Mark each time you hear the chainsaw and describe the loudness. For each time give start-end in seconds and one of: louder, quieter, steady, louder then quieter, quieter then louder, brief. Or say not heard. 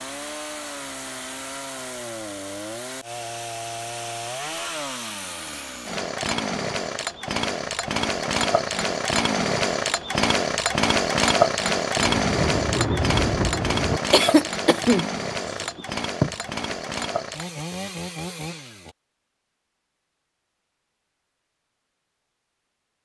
0.0-18.9 louder then quieter.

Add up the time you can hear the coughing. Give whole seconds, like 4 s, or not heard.
3 s.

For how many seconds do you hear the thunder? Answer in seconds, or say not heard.
2 s.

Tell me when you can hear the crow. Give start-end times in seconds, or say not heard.
not heard.